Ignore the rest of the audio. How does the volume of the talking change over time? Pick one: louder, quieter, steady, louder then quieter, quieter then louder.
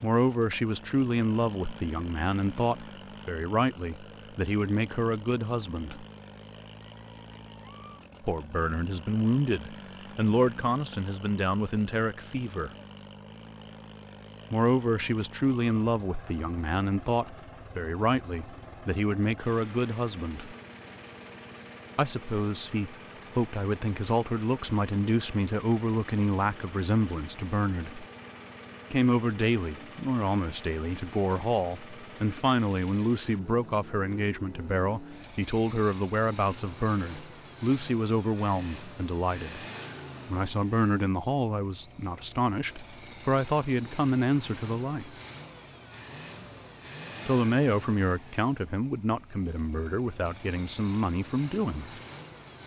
steady.